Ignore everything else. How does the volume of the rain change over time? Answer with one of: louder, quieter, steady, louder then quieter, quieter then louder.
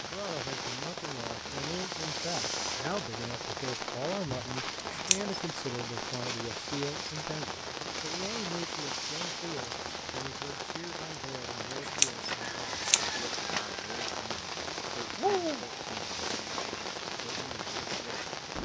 steady.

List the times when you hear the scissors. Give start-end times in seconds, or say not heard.
4.8-5.4, 11.7-13.1.